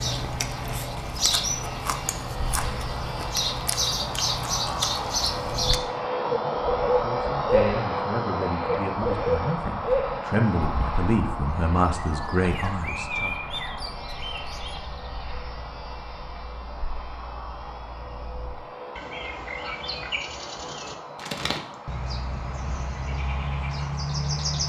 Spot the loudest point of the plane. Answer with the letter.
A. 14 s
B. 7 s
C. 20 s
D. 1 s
B.